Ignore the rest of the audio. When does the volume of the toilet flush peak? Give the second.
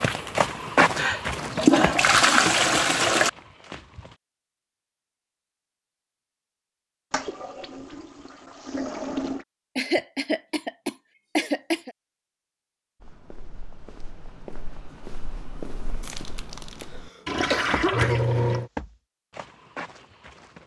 2 s.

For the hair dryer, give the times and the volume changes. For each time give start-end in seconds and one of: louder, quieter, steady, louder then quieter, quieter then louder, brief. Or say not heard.
not heard.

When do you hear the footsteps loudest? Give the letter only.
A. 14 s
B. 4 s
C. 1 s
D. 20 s
C.